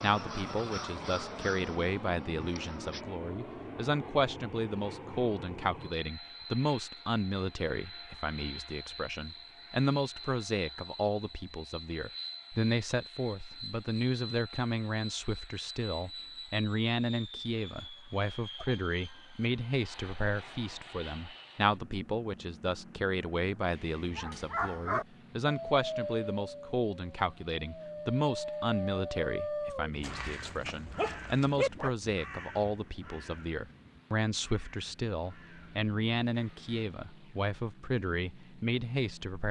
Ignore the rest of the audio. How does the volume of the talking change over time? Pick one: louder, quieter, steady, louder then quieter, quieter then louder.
steady.